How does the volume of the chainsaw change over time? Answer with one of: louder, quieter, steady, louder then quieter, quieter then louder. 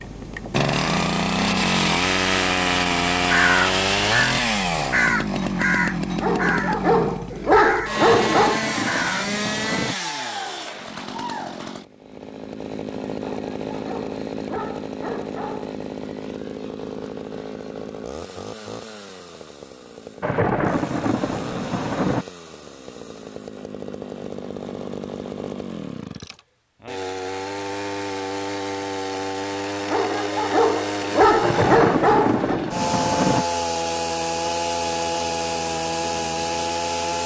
quieter then louder.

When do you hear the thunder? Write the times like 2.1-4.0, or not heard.
7.9-9.9, 20.2-22.2, 31.4-33.5.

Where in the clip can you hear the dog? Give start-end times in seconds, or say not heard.
6.2-8.6, 13.2-15.7, 29.9-32.6.